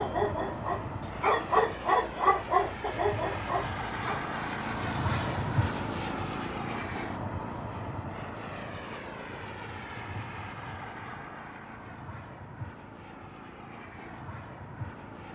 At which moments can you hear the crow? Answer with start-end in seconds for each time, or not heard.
not heard.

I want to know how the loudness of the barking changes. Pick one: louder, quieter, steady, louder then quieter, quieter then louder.
louder then quieter.